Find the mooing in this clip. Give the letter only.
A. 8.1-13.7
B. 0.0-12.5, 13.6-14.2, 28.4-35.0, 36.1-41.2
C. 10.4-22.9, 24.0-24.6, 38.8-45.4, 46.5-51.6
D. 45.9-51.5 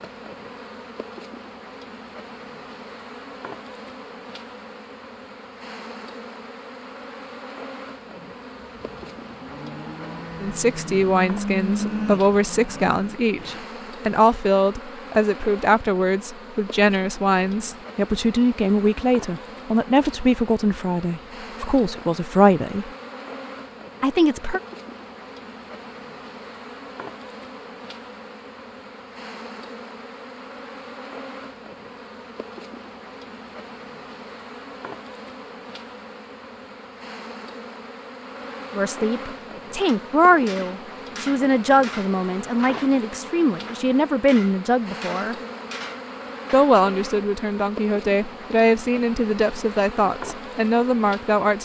A.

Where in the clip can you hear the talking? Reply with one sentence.
The talking can be heard from 10.4 to 22.9 s, from 24.0 to 24.6 s, from 38.8 to 45.4 s and from 46.5 to 51.6 s.